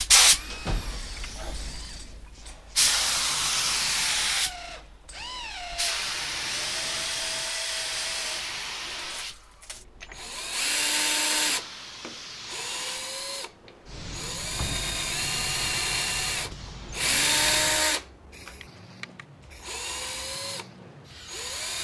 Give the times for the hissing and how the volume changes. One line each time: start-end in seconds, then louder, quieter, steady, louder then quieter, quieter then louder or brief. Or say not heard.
0.0-21.7 quieter.